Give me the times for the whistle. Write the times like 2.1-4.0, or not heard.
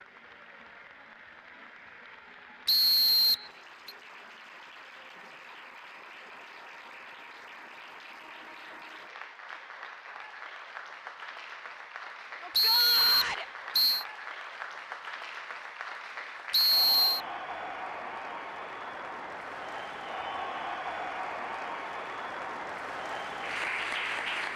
2.6-3.9, 12.5-14.1, 16.5-17.2.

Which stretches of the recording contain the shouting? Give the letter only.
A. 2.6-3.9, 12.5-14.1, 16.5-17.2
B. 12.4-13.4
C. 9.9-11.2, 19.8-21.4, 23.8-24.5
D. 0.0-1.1
B.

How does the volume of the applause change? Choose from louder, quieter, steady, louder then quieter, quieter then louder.
louder.